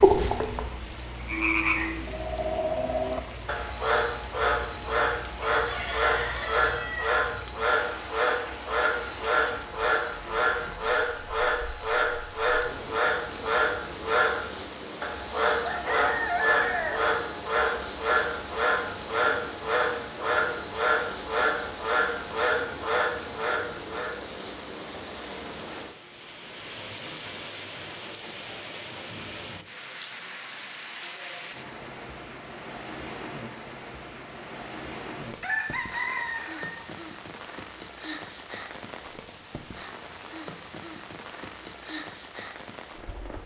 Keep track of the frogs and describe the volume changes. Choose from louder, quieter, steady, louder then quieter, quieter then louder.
steady.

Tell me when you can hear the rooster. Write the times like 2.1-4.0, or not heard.
5.5-7.2, 15.6-17.0, 35.4-36.8.